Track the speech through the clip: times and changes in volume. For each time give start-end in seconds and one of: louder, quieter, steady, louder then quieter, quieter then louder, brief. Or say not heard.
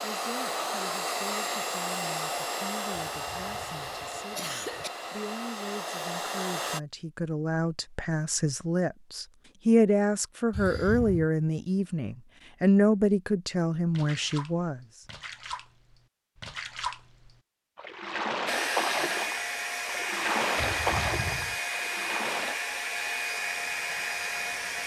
0.0-14.8 louder.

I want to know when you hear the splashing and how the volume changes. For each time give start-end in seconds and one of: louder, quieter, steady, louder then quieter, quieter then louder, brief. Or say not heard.
13.9-22.6 louder.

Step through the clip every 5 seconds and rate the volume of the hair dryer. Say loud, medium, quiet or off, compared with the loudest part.
loud, loud, off, loud, loud.